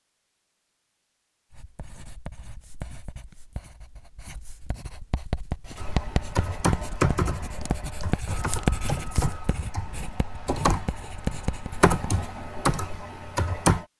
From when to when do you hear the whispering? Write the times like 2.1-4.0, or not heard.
not heard.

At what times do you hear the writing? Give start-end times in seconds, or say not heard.
1.5-12.3.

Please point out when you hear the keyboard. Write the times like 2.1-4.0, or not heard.
5.8-13.8.